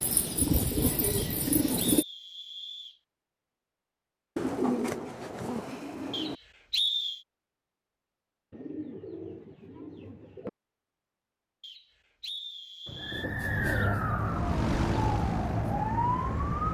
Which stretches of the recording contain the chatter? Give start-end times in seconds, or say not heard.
not heard.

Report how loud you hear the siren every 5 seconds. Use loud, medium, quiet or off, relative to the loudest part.
off, off, loud, loud.